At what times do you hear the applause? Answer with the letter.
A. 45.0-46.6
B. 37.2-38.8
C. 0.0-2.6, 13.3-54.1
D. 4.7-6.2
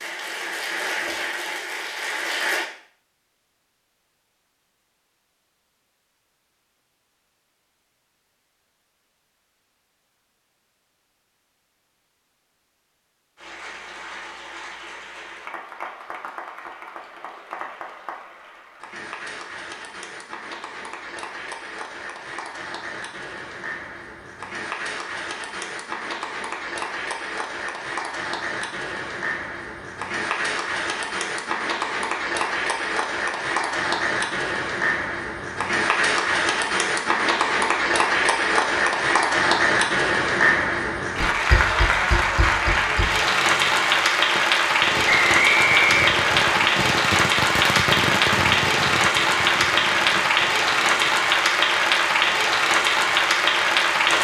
C.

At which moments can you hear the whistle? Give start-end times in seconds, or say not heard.
45.0-46.6.